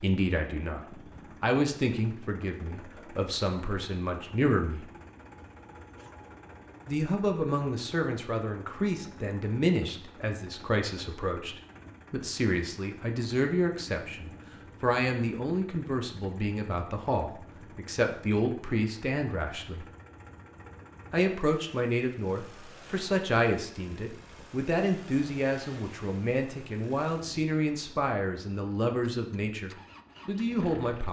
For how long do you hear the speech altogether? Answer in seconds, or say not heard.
28 s.